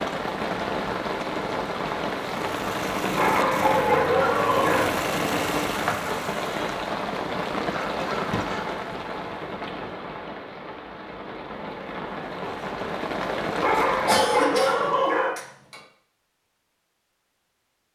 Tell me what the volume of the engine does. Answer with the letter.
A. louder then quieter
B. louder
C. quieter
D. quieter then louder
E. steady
E.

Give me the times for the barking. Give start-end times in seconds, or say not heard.
3.1-4.8, 13.6-15.3.